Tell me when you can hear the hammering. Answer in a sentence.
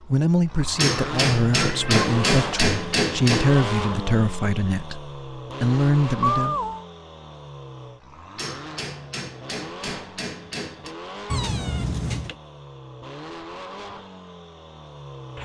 You can hear the hammering from 0.8 to 3.5 s and from 8.3 to 10.9 s.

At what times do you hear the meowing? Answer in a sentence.
The meowing can be heard from 1.6 to 2.6 s, from 6.2 to 6.8 s and from 11.3 to 12.3 s.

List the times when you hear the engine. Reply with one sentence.
You can hear the engine from 0.0 to 15.4 s.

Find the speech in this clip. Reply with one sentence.
The speech can be heard from 0.1 to 6.5 s.